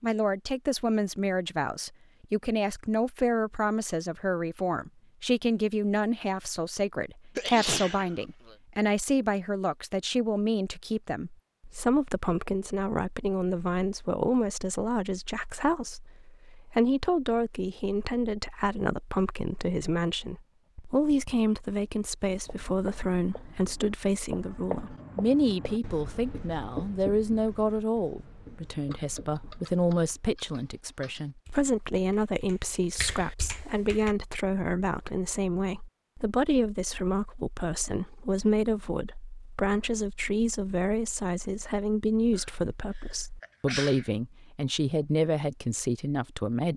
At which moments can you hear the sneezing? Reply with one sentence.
You can hear the sneezing from 7.3 to 8.6 s and from 42.3 to 44.1 s.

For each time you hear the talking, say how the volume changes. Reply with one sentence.
The talking can be heard from 0.0 to 46.7 s, at a steady volume.